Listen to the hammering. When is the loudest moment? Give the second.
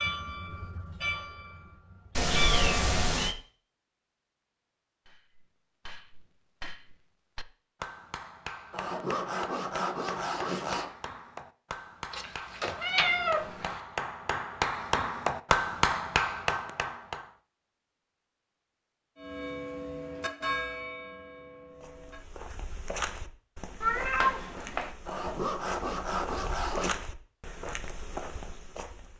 16 s.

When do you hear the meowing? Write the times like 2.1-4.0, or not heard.
2.1-3.4, 12.1-13.8, 23.8-24.9.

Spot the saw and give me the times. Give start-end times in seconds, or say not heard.
8.7-10.9, 25.1-27.0.